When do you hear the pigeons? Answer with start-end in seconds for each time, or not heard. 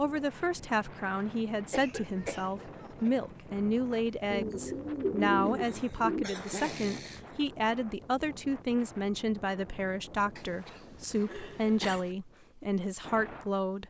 4.3-6.2.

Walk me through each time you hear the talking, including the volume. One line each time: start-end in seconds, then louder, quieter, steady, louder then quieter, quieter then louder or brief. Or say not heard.
0.0-13.8 steady.